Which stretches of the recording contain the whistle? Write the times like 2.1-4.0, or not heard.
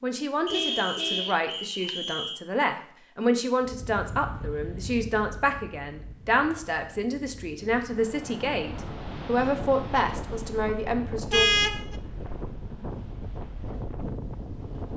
0.5-2.4.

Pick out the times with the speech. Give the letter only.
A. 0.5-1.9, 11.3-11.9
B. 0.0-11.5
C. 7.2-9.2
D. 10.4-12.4
B.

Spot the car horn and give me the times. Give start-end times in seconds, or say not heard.
0.5-1.9, 11.3-11.9.